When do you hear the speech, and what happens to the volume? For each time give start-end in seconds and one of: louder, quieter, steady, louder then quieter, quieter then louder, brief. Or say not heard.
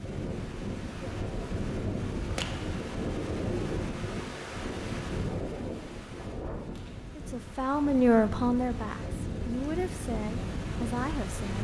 7.2-11.5 quieter.